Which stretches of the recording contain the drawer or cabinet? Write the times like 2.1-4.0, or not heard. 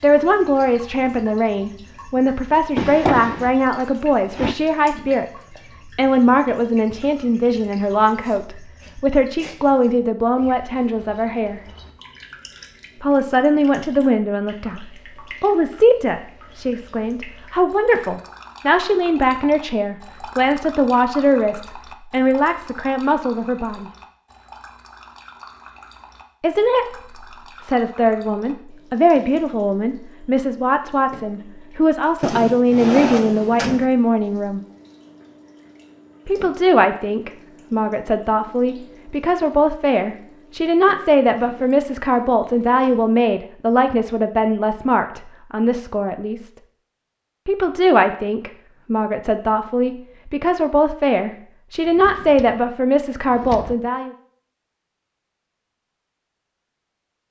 2.8-4.5, 32.2-33.9, 51.9-53.8.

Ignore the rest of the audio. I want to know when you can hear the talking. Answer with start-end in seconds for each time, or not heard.
0.0-11.6, 13.0-23.9, 26.4-26.9, 27.6-34.6, 36.2-46.5, 47.5-54.1.